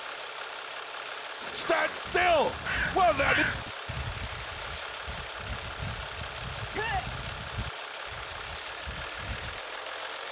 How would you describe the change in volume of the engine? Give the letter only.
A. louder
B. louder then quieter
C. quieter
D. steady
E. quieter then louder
D.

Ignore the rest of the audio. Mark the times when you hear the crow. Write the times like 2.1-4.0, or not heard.
1.4-9.6.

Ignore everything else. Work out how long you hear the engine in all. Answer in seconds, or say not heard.
10 s.